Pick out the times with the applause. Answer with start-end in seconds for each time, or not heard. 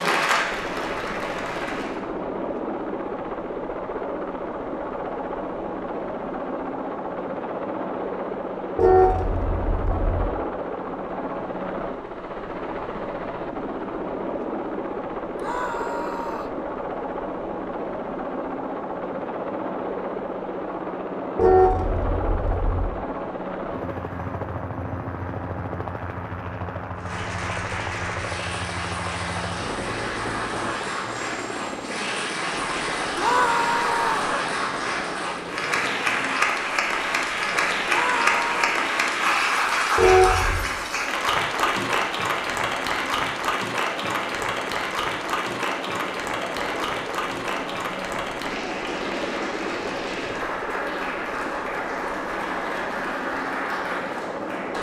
0.0-2.0, 26.9-54.7.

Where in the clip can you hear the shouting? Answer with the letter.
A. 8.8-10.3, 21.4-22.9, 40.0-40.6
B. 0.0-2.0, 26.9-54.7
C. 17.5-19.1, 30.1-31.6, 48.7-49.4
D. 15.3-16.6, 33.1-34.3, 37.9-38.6
D.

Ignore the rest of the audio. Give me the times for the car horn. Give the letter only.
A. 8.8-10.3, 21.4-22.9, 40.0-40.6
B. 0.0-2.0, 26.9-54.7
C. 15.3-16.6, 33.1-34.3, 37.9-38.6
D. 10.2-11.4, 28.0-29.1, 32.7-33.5
A.